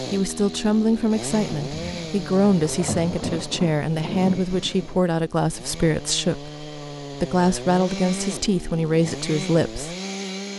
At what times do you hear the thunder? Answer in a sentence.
The thunder can be heard from 1.7 to 5.0 s.